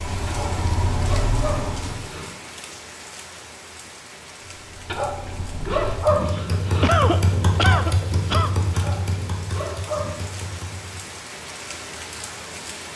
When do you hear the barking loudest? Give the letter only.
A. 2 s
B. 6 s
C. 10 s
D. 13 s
B.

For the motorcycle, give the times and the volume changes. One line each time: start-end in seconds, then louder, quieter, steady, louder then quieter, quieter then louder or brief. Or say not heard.
0.0-2.0 brief
4.5-11.2 louder then quieter.